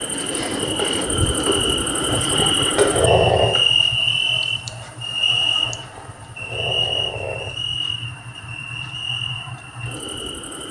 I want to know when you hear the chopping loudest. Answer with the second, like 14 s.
3 s.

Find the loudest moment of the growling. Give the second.
3 s.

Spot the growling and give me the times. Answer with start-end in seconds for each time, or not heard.
2.0-3.6, 5.8-7.5.